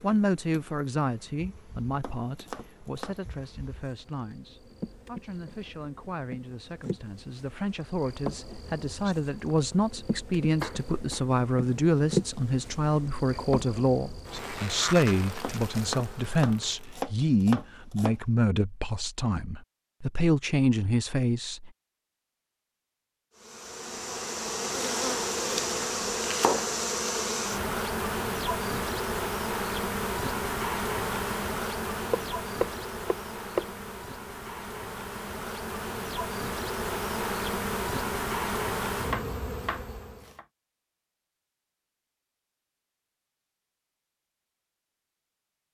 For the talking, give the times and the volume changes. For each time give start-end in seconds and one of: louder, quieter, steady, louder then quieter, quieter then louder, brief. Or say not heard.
0.0-21.7 louder.